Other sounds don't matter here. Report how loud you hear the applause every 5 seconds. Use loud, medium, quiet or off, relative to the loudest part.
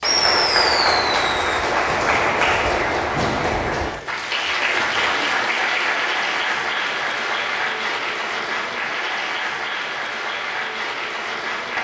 loud, loud, medium.